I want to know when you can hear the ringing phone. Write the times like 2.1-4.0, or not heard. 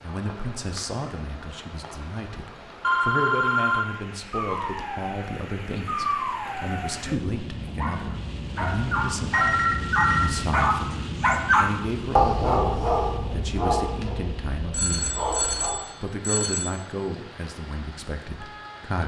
2.8-3.9, 9.3-10.3, 14.7-16.7.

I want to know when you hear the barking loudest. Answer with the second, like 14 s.
11 s.